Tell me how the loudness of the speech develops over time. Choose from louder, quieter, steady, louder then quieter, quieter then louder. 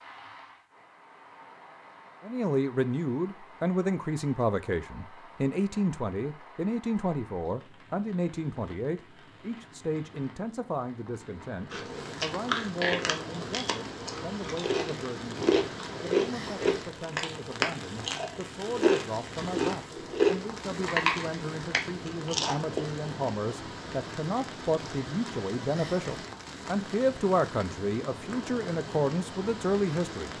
quieter then louder.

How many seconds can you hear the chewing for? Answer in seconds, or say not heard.
11 s.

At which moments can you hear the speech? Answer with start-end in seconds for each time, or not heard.
2.2-30.3.